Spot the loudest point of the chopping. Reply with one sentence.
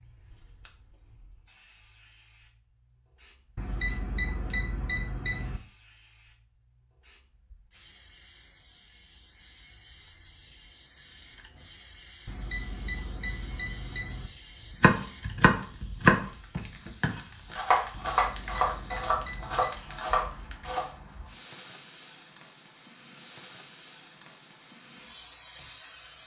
The volume of the chopping peaks at 16 seconds.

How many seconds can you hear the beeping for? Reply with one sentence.
The beeping can be heard for 6 seconds in total.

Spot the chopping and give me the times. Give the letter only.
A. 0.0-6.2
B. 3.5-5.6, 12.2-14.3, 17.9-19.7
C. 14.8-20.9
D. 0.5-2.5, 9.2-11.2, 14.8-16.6
C.